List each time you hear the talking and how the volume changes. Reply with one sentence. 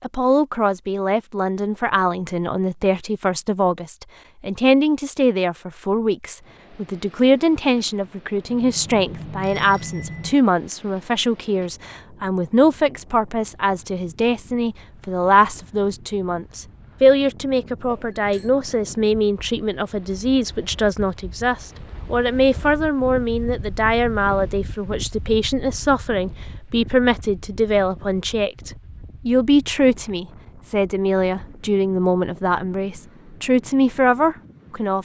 The talking can be heard from 0.0 to 35.0 s, at a steady volume.